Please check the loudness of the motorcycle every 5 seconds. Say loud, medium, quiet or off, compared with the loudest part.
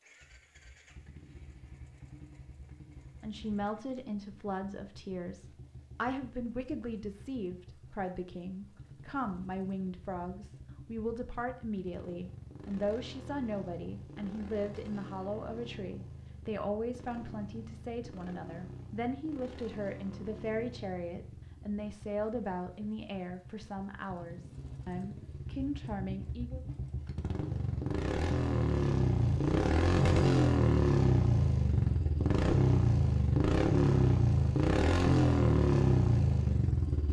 quiet, quiet, quiet, quiet, quiet, medium, loud, loud.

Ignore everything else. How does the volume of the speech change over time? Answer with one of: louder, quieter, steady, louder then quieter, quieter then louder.
steady.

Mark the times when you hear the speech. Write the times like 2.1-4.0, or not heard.
3.2-26.6.